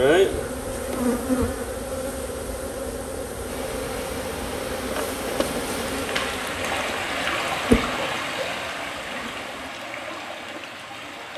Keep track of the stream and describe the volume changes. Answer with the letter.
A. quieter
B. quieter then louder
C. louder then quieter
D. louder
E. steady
C.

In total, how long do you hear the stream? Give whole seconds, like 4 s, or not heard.
8 s.